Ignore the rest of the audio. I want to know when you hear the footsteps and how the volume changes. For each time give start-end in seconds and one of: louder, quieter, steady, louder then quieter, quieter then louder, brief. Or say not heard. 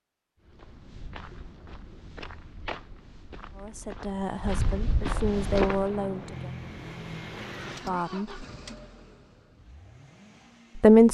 0.4-6.0 louder.